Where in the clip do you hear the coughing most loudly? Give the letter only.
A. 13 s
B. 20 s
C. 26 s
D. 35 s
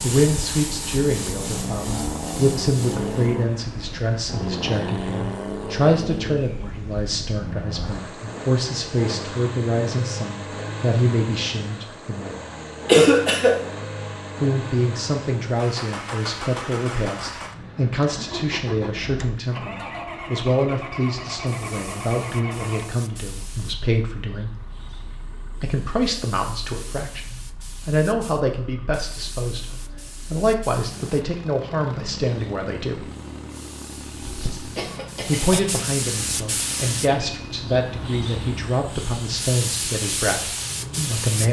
A.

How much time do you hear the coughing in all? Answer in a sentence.
You can hear the coughing for 2 seconds altogether.